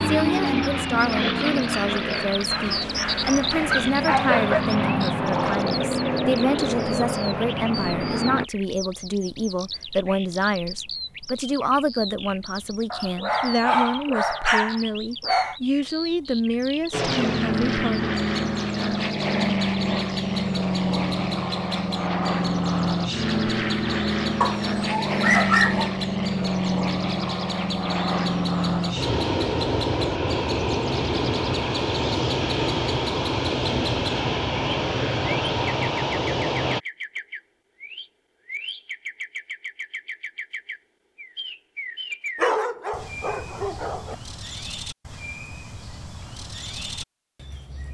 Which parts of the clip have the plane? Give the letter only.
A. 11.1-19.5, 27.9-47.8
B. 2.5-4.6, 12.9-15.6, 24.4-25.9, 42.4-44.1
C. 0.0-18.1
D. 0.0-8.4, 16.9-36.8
D.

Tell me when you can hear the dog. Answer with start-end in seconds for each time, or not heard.
2.5-4.6, 12.9-15.6, 24.4-25.9, 42.4-44.1.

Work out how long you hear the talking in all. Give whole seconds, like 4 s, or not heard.
18 s.